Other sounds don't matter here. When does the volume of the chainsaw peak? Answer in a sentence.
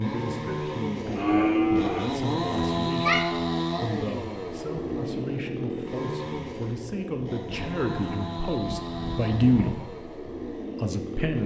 The volume of the chainsaw peaks at 3 seconds.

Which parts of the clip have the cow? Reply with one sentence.
You can hear the cow from 1.1 to 2.1 s and from 7.5 to 9.9 s.